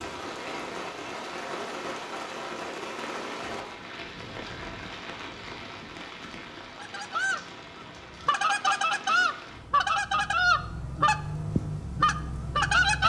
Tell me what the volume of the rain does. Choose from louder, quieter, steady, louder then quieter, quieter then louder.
quieter then louder.